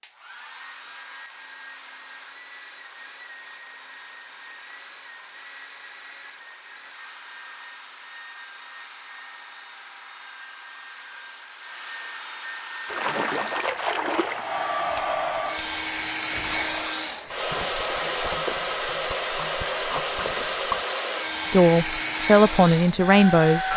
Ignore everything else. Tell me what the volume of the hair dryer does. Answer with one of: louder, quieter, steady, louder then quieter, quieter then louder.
louder.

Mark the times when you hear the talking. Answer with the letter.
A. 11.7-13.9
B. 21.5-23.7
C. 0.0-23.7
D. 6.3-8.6
B.